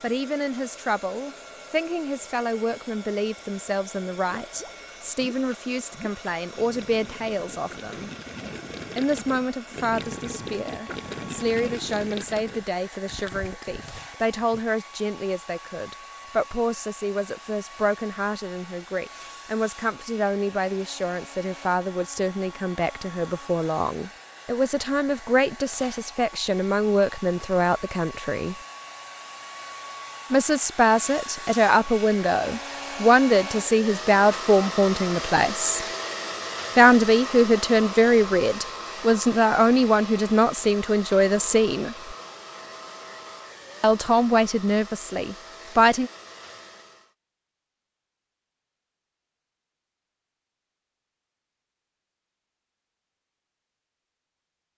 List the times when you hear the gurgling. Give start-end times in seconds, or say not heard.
4.4-14.7.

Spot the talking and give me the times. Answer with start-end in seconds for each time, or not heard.
0.0-8.1, 8.9-28.6, 30.3-35.9, 36.8-42.1, 43.8-46.1.